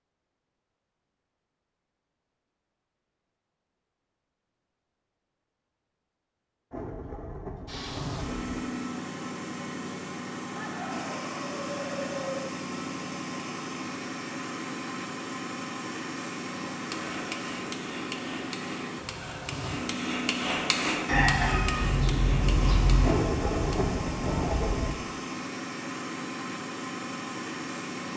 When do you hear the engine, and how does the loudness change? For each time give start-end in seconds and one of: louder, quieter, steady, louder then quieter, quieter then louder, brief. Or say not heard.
7.7-28.1 steady.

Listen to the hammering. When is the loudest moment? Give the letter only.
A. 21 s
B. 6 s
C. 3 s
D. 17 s
A.